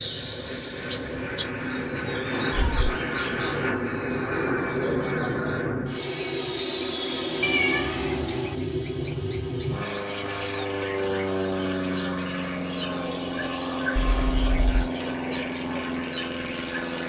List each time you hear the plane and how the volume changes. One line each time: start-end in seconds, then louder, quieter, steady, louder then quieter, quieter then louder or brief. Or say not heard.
0.0-17.0 steady.